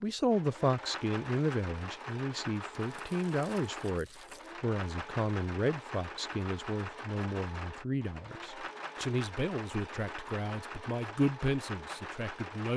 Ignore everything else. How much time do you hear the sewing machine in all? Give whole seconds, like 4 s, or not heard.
13 s.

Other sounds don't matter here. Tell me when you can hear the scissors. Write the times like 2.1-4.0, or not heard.
not heard.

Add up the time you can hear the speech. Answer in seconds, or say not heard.
13 s.